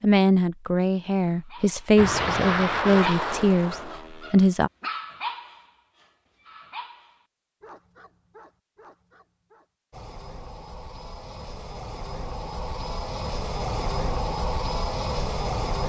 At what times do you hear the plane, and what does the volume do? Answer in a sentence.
The plane can be heard briefly from 1.9 to 4.3 s; and from 9.9 to 15.8 s, getting louder.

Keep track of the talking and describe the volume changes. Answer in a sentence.
The volume of the talking stays about the same.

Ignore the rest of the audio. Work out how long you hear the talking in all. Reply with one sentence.
The talking can be heard for 5 seconds in total.